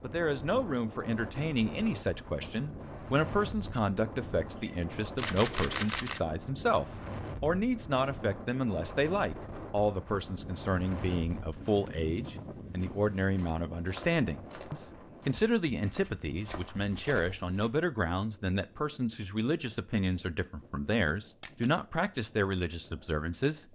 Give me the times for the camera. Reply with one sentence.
You can hear the camera from 4.5 to 6.2 s and from 21.4 to 21.8 s.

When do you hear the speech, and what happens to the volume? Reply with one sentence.
The speech can be heard from 0.0 to 23.7 s, at a steady volume.